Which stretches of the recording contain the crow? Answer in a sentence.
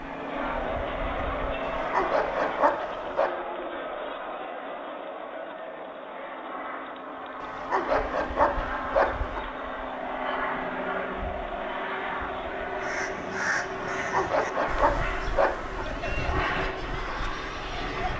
The crow can be heard from 12.8 to 18.1 s.